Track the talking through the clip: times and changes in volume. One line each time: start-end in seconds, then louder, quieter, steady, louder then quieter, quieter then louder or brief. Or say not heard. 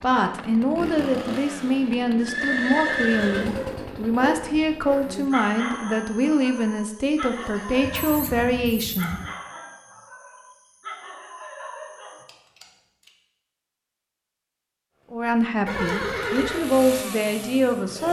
0.0-9.2 steady
15.1-18.0 brief.